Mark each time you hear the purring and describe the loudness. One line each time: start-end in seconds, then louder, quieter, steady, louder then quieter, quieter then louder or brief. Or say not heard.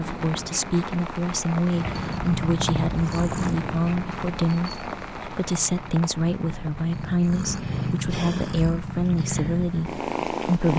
1.7-10.7 quieter then louder.